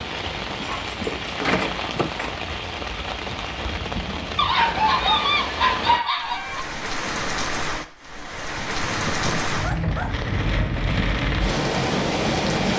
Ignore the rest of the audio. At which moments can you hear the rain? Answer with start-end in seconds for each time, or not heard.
0.0-12.7.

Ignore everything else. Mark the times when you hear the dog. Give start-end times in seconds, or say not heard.
0.6-2.4, 4.3-6.7, 8.6-10.2.